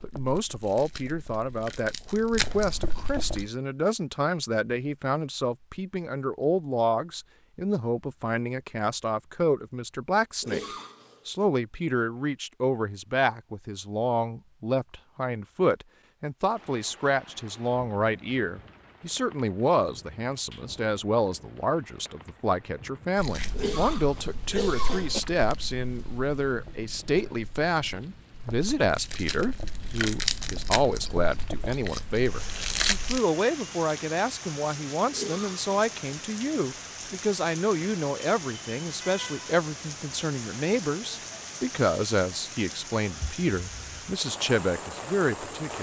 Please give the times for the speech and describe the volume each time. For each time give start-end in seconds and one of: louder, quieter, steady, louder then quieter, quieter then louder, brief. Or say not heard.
0.0-10.6 steady
11.2-45.7 steady.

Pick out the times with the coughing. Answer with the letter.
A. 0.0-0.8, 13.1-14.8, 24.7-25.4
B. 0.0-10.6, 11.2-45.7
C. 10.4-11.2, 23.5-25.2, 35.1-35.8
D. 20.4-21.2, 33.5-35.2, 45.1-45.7
C.